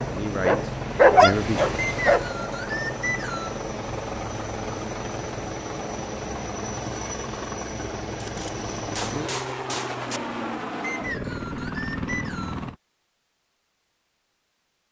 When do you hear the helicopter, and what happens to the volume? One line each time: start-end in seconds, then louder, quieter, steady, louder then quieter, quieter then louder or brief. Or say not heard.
0.0-12.8 steady.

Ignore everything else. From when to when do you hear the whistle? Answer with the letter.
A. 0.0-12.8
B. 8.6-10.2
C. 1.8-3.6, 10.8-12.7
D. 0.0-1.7
C.